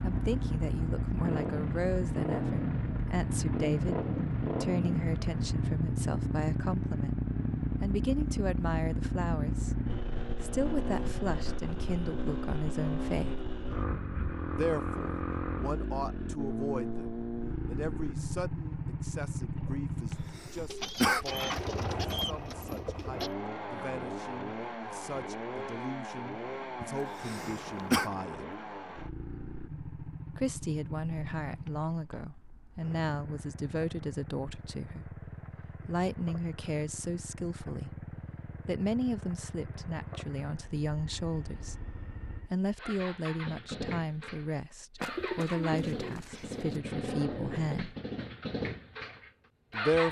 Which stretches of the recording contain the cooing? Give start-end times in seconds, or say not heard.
20.6-23.3, 45.0-46.8.